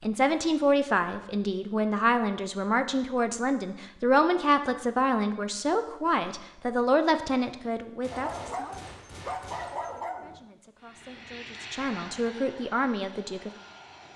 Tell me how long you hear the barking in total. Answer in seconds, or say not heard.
2 s.